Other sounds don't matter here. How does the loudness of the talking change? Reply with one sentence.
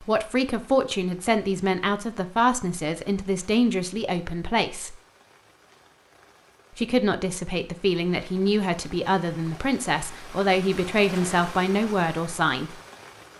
The loudness of the talking stays about the same.